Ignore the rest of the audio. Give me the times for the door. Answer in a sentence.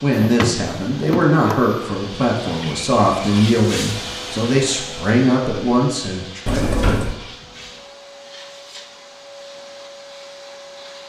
The door can be heard from 0.1 to 1.8 s and from 6.5 to 7.2 s.